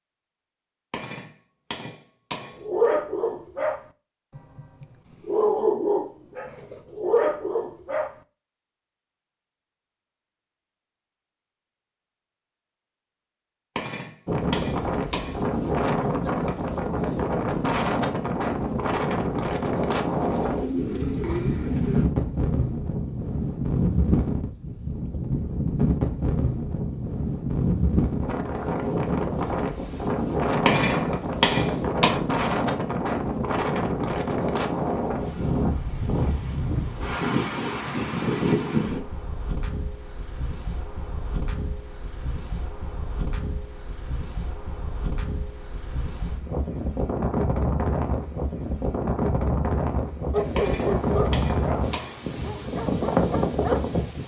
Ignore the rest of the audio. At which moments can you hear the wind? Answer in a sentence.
The wind can be heard from 14.2 to 54.2 s.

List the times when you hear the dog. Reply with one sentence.
The dog can be heard from 2.6 to 8.2 s and from 50.3 to 54.2 s.